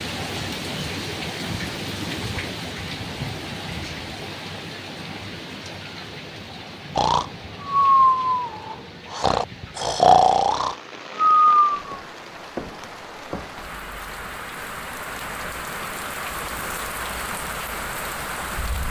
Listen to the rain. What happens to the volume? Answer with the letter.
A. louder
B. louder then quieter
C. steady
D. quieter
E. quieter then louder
E.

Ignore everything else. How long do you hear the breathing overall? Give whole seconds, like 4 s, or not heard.
5 s.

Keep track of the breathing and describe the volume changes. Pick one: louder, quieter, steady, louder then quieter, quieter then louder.
quieter then louder.